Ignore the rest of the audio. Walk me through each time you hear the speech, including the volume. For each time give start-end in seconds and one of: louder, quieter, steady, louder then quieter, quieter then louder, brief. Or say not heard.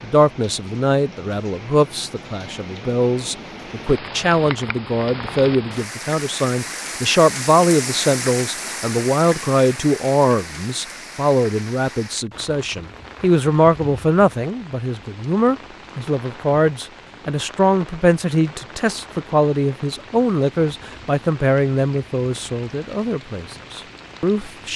0.0-24.7 steady.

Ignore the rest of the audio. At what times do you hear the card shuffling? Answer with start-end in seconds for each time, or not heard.
not heard.